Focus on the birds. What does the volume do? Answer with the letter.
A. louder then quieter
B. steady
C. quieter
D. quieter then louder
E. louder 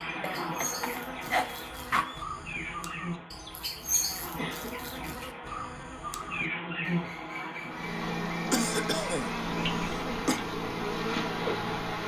A.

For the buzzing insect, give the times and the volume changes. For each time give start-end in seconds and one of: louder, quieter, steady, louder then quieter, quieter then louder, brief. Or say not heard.
0.0-12.0 louder.